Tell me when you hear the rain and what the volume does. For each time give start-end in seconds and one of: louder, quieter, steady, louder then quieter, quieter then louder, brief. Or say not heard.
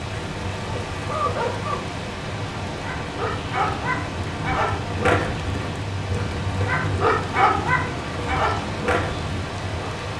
0.0-10.1 steady.